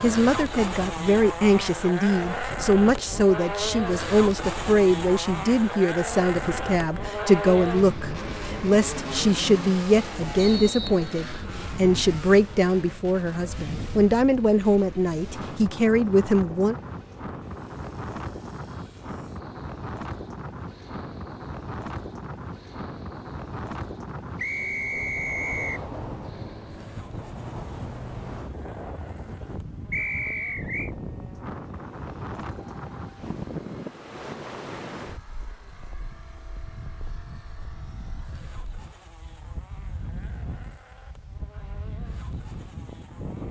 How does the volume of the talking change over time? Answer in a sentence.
The loudness of the talking stays about the same.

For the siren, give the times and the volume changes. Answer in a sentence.
The siren can't be heard in this clip.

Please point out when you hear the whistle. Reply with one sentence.
You can hear the whistle from 10.3 to 11.5 s, from 24.4 to 25.9 s and from 29.9 to 30.9 s.